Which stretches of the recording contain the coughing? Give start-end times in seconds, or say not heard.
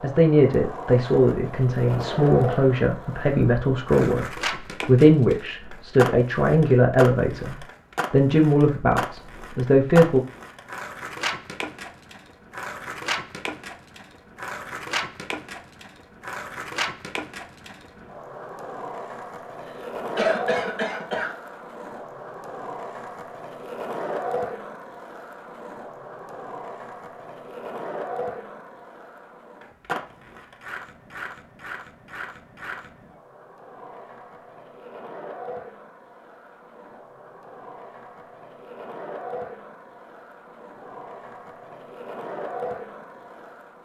19.8-21.4.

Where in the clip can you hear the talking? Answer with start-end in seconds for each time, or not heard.
0.0-4.2, 4.8-10.2.